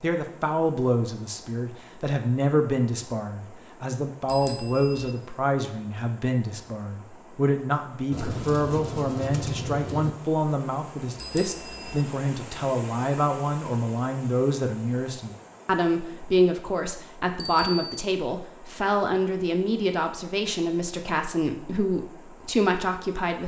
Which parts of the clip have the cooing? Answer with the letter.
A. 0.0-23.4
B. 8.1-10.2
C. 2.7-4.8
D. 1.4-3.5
B.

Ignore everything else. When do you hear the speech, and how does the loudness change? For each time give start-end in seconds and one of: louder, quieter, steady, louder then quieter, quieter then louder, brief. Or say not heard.
0.0-23.4 steady.